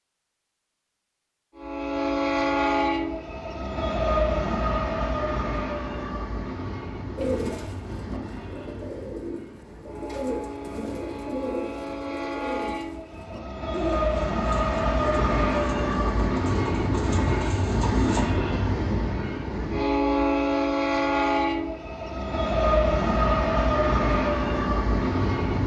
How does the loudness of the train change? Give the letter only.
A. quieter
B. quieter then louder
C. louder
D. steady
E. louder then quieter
B.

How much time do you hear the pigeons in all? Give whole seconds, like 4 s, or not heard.
11 s.